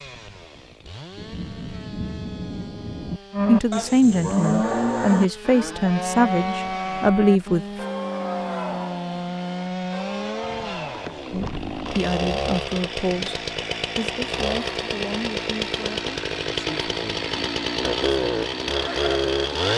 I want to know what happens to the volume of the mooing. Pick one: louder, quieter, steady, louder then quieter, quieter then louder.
quieter.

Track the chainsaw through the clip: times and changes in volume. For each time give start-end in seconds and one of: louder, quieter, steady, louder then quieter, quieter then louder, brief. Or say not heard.
0.0-19.7 louder.